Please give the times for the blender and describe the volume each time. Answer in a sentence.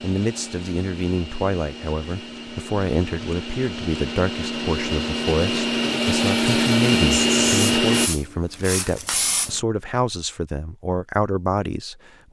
You can hear the blender from 0.0 to 8.1 s, getting louder.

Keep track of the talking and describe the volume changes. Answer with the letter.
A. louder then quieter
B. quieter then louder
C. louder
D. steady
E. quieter
D.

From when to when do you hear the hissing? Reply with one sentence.
The hissing can be heard from 7.1 to 9.6 s.